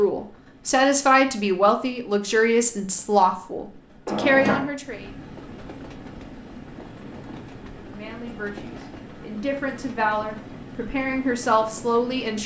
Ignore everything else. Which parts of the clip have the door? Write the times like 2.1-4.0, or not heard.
4.0-4.7.